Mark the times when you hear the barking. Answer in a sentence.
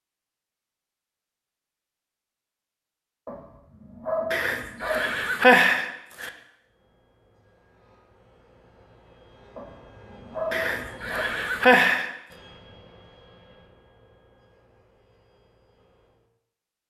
The barking can be heard from 3.2 to 5.2 s and from 9.6 to 11.2 s.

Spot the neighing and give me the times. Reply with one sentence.
The neighing can be heard from 4.3 to 6.3 s and from 10.5 to 12.1 s.